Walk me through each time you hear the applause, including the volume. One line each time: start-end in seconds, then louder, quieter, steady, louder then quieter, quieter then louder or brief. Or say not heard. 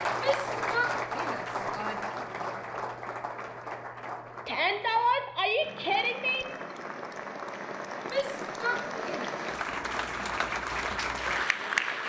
0.0-12.0 quieter then louder.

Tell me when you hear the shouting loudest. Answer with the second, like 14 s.
5 s.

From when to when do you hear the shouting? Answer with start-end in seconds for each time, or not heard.
0.1-2.1, 4.5-6.5, 8.1-9.3.